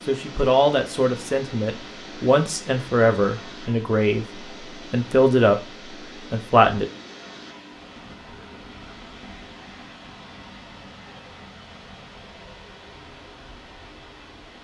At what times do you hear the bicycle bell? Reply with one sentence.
The bicycle bell can't be heard in this clip.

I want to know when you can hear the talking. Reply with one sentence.
You can hear the talking from 0.1 to 6.8 s.